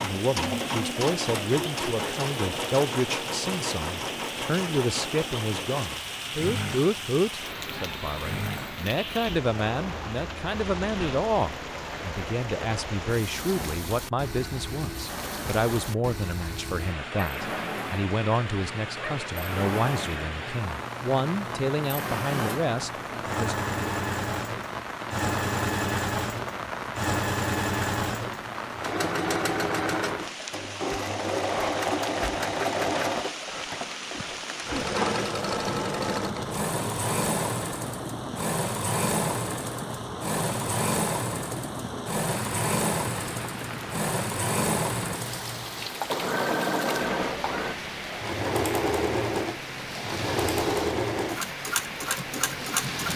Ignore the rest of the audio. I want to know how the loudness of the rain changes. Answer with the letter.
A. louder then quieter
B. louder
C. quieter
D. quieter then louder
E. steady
E.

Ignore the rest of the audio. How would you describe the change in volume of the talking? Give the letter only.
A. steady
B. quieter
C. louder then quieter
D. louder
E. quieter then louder
A.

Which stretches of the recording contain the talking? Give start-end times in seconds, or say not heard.
0.0-23.6.